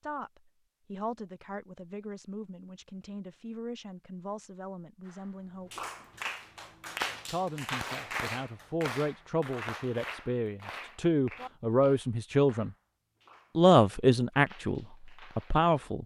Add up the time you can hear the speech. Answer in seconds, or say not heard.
14 s.